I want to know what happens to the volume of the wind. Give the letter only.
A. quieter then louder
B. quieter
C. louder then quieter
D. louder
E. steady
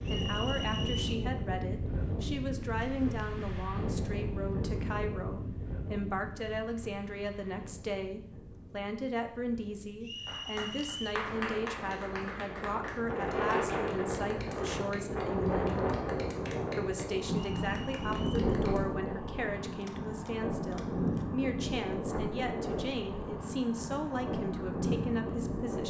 A.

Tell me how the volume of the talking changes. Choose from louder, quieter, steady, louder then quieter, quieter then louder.
steady.